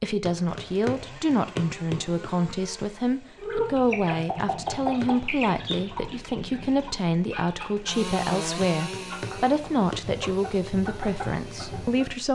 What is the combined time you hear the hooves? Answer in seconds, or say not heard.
not heard.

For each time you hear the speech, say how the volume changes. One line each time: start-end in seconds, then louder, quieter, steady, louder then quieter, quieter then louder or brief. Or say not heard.
0.0-12.3 steady.